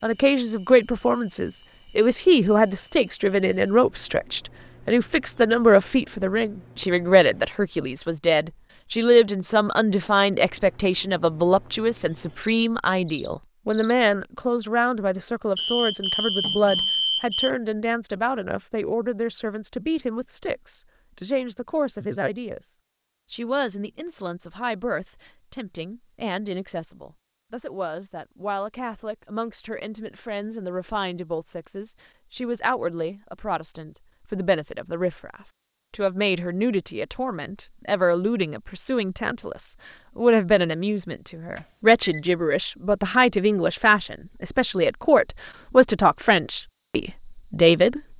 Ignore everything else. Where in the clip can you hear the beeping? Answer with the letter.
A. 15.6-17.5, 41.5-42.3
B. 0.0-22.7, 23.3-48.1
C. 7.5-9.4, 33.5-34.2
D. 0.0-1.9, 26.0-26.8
A.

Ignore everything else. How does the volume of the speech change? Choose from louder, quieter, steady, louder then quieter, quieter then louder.
quieter then louder.